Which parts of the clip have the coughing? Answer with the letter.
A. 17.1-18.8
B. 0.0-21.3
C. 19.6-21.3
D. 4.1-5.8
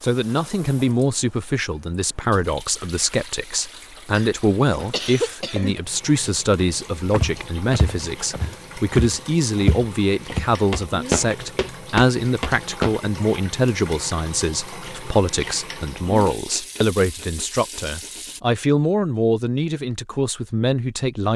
D.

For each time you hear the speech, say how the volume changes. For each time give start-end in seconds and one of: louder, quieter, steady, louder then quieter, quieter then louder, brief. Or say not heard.
0.0-21.3 steady.